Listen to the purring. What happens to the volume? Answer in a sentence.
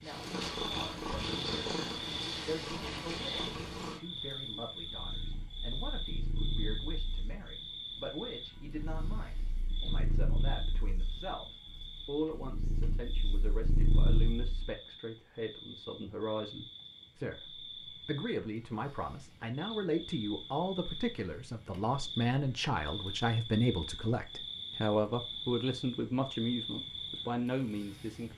The volume of the purring goes down, then up.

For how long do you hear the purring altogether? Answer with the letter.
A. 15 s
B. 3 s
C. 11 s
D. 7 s
A.